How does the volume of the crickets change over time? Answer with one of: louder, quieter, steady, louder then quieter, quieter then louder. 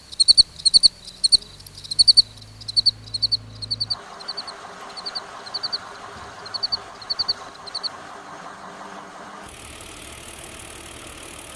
quieter.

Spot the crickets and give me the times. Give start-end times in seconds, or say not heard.
0.1-7.9.